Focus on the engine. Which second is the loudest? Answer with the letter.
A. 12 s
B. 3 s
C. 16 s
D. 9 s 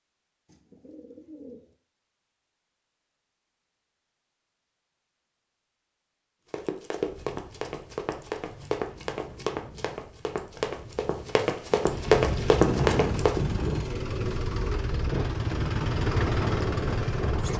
C.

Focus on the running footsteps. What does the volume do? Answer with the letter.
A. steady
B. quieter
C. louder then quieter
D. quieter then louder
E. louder
E.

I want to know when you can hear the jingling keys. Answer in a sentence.
The jingling keys can't be heard in this clip.